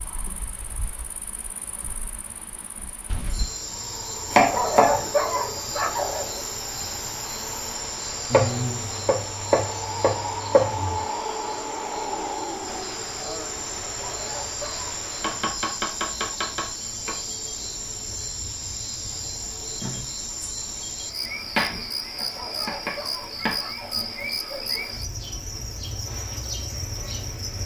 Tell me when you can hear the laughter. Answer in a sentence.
You can't hear the laughter here.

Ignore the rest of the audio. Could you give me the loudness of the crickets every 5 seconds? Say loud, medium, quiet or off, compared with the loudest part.
medium, loud, loud, loud, loud, loud.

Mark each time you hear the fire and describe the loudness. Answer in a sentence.
The fire can't be heard in this clip.